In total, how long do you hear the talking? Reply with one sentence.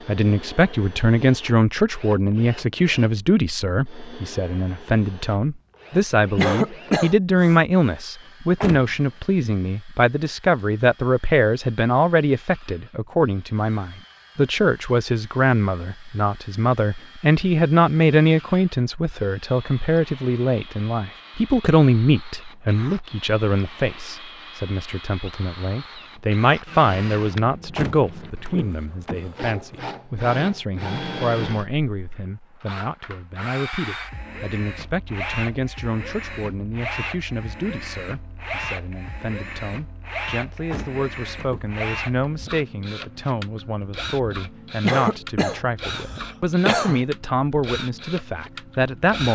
You can hear the talking for 49 seconds altogether.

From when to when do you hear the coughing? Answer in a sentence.
The coughing can be heard from 6.3 to 7.5 s and from 44.8 to 47.0 s.